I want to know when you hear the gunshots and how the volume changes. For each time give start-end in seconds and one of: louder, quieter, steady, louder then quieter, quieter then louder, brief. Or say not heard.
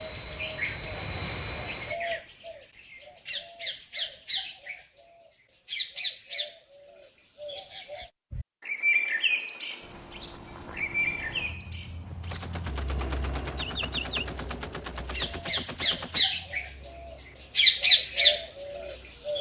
12.2-16.2 steady.